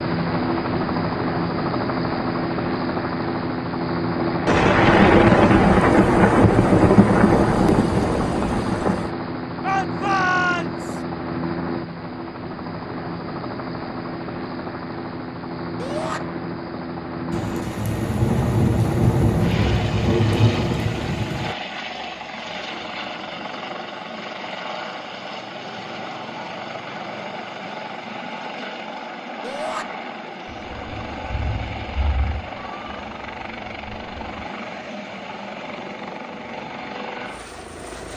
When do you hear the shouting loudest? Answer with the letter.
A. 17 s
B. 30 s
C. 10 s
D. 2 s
C.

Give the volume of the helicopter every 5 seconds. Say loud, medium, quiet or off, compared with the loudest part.
loud, loud, medium, medium, medium, medium, medium, medium.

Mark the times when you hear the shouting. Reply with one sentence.
You can hear the shouting from 9.6 to 11.0 s, from 15.8 to 16.2 s and from 29.4 to 29.9 s.